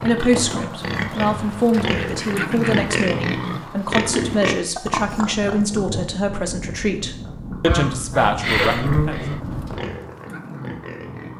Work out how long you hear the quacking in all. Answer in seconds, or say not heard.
3 s.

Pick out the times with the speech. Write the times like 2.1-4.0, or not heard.
0.0-9.2.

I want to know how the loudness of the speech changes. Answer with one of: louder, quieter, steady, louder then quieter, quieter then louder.
steady.